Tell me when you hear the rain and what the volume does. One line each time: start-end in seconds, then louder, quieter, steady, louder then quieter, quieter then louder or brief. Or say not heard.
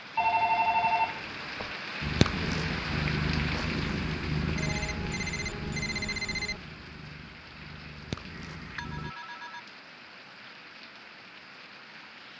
0.0-12.3 quieter.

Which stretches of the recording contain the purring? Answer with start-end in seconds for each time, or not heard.
2.0-9.2.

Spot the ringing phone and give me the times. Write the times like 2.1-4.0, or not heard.
0.1-1.8, 4.5-6.6, 8.3-9.6.